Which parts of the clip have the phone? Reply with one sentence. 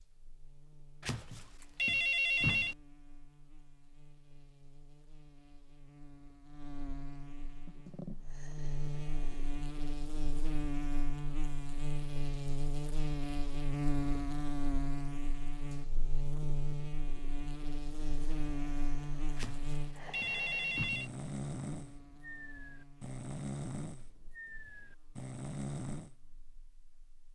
You can hear the phone from 1.0 to 2.8 s and from 19.4 to 21.1 s.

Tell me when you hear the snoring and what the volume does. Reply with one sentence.
The snoring can be heard briefly from 7.5 to 9.4 s; and from 18.0 to 26.1 s, getting louder.